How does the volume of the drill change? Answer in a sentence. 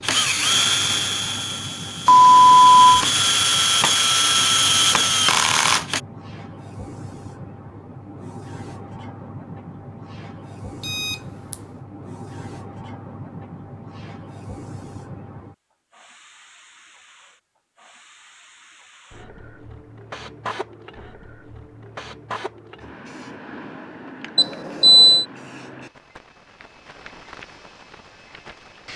The loudness of the drill goes down, then up.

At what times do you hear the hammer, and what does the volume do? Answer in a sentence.
You can't hear the hammer here.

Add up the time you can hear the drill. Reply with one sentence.
You can hear the drill for 6 seconds altogether.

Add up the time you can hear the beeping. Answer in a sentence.
You can hear the beeping for 3 seconds altogether.